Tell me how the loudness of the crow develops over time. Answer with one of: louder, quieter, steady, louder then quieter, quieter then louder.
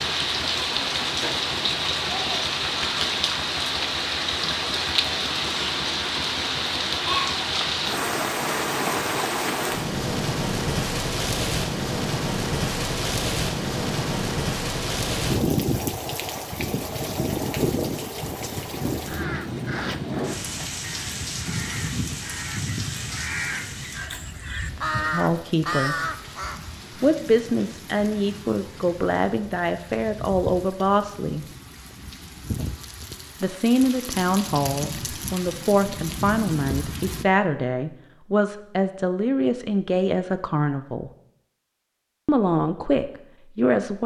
louder.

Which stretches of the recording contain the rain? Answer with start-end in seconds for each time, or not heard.
0.0-37.2.